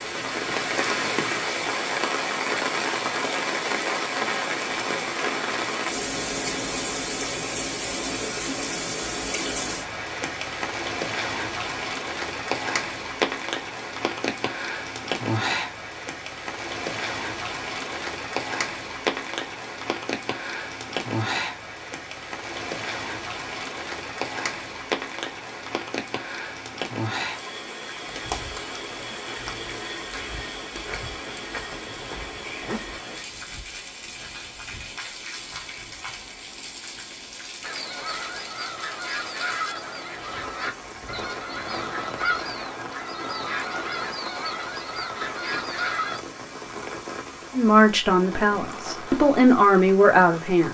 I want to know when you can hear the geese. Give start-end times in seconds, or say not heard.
37.6-46.2.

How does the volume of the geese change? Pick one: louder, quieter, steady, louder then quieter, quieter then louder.
steady.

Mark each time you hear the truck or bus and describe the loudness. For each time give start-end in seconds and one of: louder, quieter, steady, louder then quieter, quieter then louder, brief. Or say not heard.
not heard.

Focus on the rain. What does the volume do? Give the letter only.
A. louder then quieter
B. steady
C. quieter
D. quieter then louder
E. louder
C.